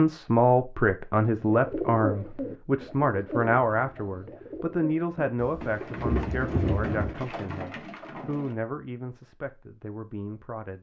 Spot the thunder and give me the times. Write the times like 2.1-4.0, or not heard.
5.3-7.1.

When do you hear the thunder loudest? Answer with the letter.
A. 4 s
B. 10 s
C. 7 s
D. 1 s
C.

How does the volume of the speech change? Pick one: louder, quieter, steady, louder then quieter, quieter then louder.
quieter.